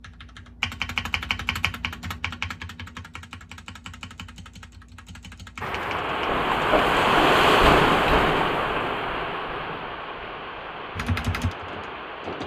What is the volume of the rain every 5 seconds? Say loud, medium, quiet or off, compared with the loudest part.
off, loud, quiet.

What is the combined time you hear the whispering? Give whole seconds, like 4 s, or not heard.
not heard.